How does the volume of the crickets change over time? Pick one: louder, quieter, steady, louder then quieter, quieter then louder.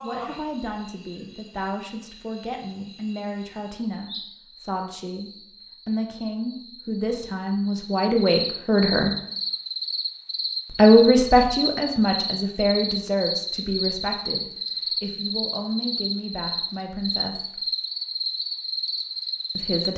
louder.